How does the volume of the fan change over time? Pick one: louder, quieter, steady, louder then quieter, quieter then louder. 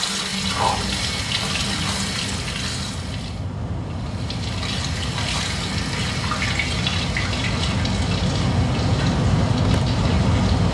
louder.